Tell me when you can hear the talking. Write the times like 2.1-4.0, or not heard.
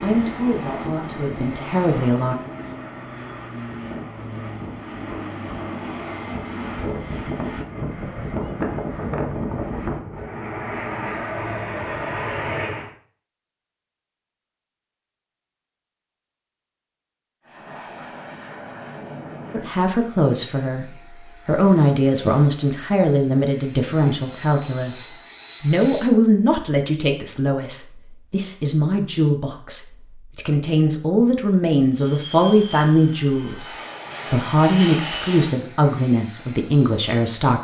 0.0-2.4, 19.5-33.7, 34.3-37.5.